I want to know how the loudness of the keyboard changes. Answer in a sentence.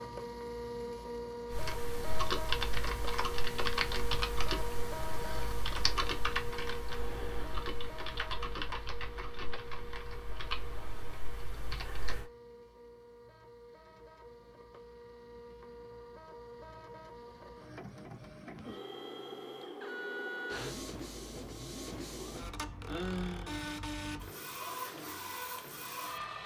The volume of the keyboard goes down.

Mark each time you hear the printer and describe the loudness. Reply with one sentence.
You can hear the printer from 0.0 to 26.4 s, getting quieter then louder.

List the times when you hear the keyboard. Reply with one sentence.
The keyboard can be heard from 1.5 to 12.3 s.